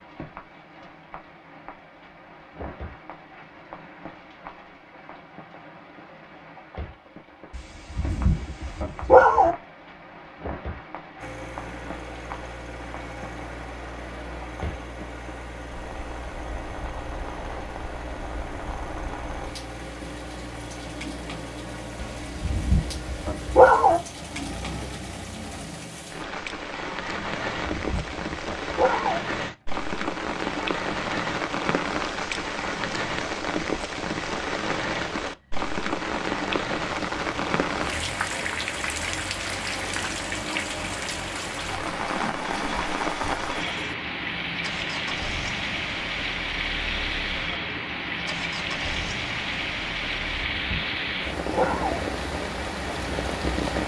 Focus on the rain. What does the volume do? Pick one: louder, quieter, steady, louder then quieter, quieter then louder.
louder.